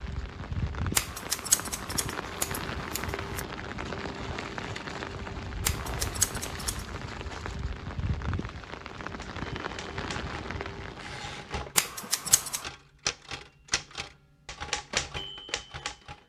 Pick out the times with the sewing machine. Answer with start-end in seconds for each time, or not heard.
not heard.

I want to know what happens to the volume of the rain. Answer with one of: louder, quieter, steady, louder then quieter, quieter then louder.
steady.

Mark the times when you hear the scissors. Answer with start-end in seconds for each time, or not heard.
0.9-3.4, 5.6-6.8, 11.8-12.7.